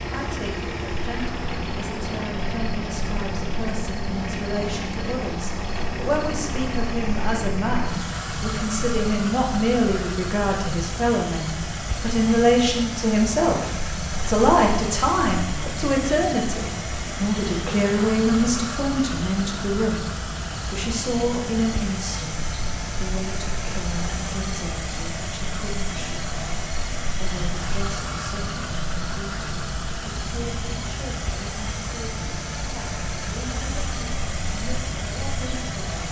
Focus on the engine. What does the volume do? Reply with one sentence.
The volume of the engine stays about the same.